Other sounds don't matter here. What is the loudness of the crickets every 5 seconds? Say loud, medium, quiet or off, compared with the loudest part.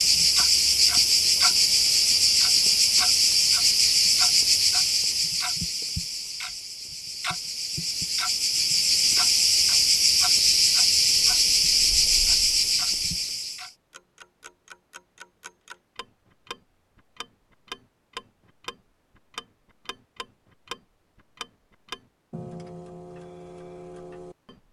loud, medium, loud, off, off.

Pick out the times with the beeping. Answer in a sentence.
You can't hear the beeping here.